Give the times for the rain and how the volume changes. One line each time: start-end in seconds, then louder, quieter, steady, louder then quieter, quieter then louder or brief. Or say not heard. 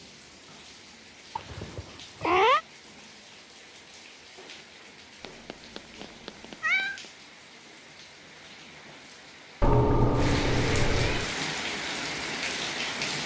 0.0-13.2 louder.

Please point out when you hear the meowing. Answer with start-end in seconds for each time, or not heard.
1.4-2.6, 5.2-7.0, 9.6-11.3.